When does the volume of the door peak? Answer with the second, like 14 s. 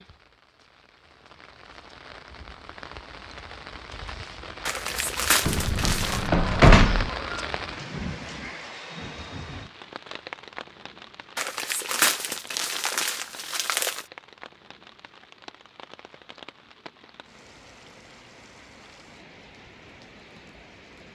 7 s.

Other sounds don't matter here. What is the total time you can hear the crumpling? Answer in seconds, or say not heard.
4 s.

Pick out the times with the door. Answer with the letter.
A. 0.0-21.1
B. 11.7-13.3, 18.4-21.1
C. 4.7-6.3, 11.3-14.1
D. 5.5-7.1
D.